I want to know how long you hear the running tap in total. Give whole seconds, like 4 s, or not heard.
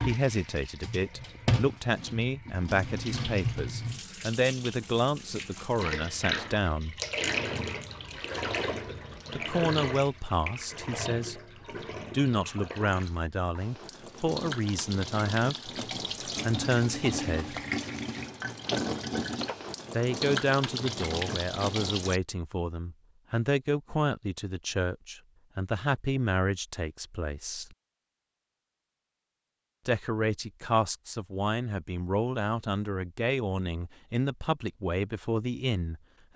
22 s.